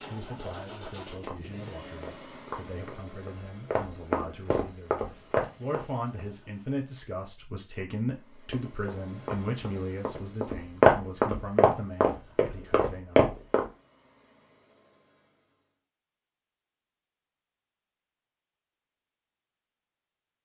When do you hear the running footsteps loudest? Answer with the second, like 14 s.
11 s.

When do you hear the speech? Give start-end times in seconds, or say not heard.
0.0-13.3.